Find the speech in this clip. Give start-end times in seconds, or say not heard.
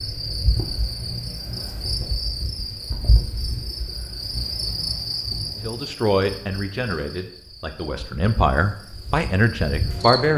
5.6-10.3.